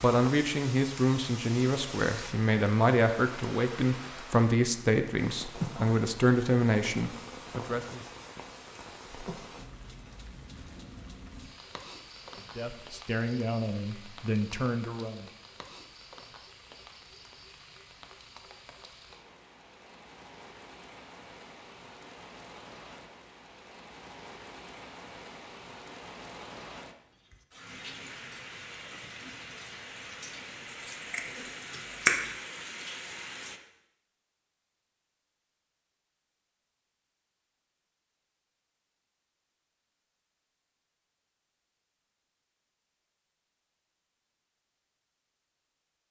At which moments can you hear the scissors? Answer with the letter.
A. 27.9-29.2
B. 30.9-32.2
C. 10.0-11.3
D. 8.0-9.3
B.